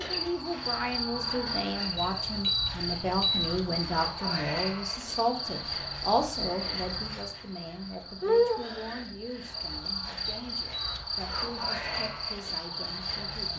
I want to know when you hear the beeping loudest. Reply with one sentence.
The volume of the beeping peaks at 3 seconds.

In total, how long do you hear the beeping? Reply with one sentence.
You can hear the beeping for 3 seconds altogether.